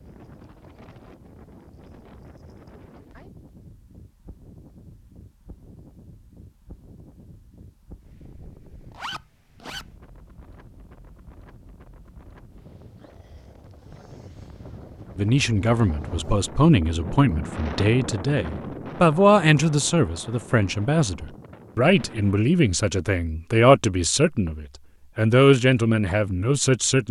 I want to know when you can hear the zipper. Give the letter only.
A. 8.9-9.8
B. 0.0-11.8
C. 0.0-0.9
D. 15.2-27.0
A.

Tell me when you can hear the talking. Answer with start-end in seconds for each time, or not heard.
15.2-27.0.